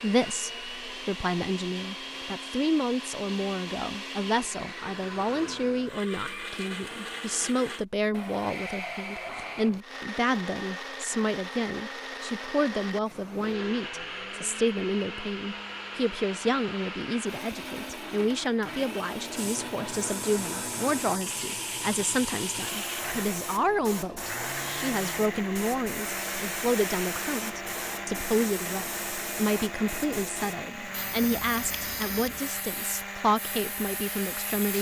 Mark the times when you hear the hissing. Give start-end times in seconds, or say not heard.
19.4-34.7.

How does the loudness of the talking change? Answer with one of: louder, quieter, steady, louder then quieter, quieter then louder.
steady.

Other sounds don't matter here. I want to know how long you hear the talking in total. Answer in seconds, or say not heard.
35 s.